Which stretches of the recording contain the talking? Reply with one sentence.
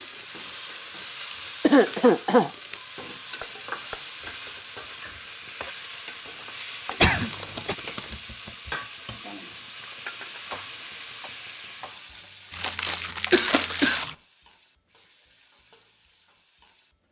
You can't hear the talking here.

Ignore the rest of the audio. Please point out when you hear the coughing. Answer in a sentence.
You can hear the coughing from 1.6 to 2.5 s, from 7.0 to 7.8 s and from 13.3 to 14.0 s.